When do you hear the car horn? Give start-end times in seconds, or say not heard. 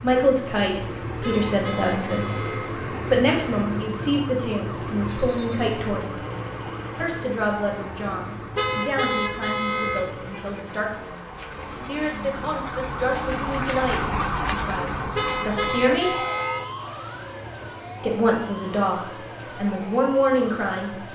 1.2-2.7, 8.5-10.0, 15.1-16.6.